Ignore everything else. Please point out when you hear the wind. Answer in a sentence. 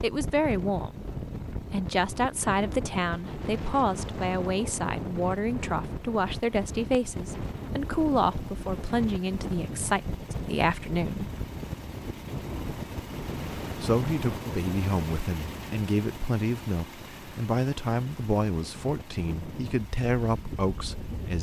The wind can be heard from 0.0 to 21.3 s.